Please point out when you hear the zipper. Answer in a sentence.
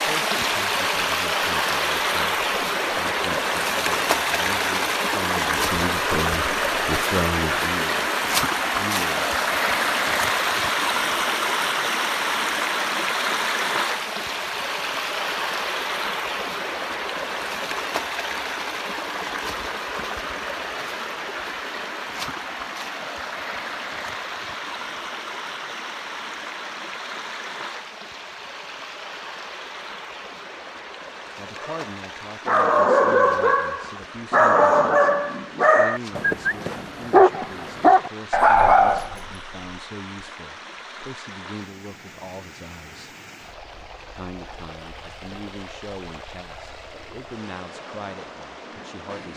You can't hear the zipper here.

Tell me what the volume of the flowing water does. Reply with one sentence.
The loudness of the flowing water goes down.